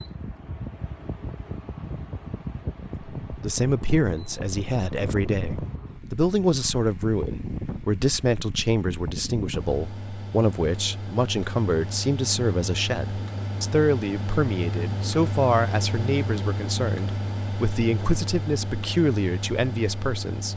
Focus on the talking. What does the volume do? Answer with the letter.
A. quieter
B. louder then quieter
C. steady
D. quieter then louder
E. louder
C.